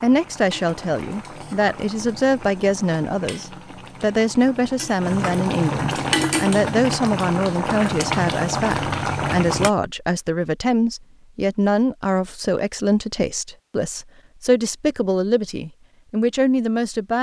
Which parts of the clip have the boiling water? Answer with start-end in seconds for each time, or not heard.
0.0-9.7.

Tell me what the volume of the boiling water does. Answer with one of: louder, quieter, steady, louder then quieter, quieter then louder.
louder.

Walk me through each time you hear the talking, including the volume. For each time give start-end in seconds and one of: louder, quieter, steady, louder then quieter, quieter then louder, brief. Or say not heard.
0.0-17.1 steady.